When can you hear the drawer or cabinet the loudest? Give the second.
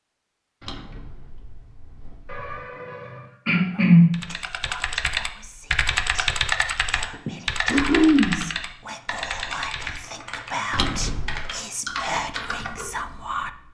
11 s.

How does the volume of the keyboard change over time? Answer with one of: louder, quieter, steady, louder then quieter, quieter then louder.
quieter.